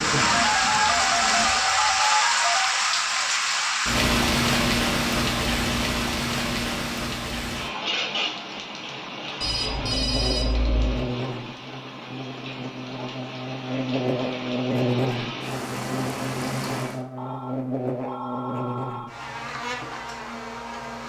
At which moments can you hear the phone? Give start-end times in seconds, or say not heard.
0.2-2.7, 9.4-10.9, 17.1-19.1.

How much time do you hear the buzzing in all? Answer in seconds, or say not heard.
11 s.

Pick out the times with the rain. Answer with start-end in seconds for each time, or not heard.
0.0-17.0.